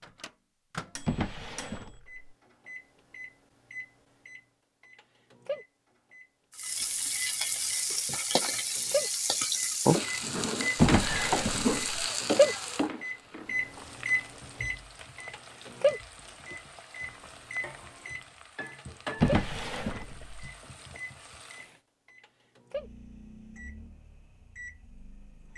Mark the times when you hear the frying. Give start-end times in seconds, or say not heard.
6.5-21.8.